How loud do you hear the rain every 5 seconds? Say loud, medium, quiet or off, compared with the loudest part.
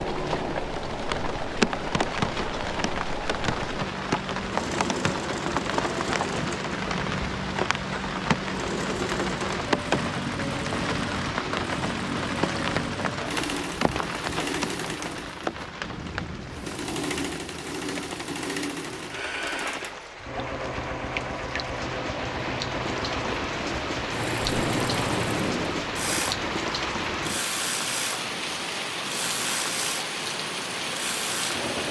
loud, loud, loud, medium, loud, loud, loud.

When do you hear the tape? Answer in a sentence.
The tape can be heard from 24.4 to 25.9 s.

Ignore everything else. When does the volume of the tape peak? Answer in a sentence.
The loudest moment of the tape is at 25 seconds.